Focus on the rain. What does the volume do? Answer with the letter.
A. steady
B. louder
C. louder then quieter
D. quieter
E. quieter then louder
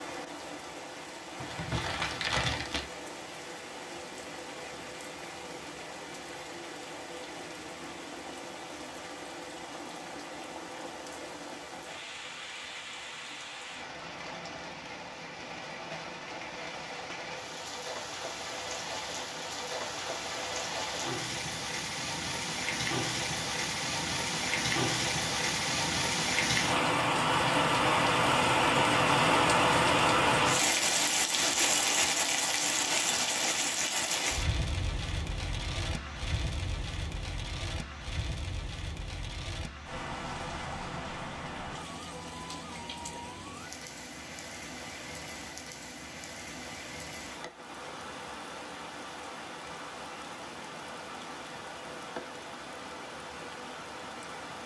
C.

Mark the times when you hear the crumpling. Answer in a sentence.
You can hear the crumpling from 1.4 to 2.9 s.